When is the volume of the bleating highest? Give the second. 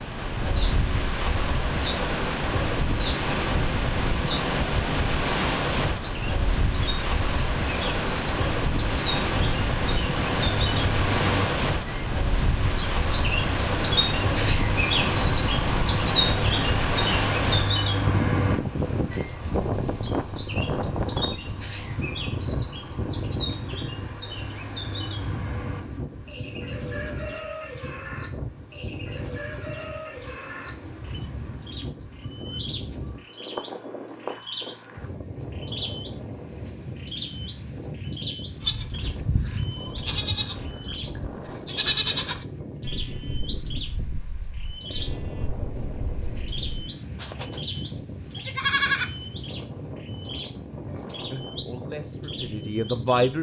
49 s.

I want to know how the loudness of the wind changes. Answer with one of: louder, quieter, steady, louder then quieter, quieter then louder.
quieter.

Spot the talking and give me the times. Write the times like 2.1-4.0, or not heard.
51.3-53.3.